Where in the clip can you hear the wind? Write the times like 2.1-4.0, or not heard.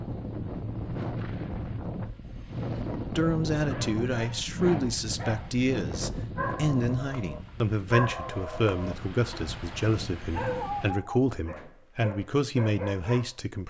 0.0-10.9.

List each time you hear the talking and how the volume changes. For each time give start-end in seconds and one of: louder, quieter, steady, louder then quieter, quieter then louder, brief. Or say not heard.
3.1-13.6 steady.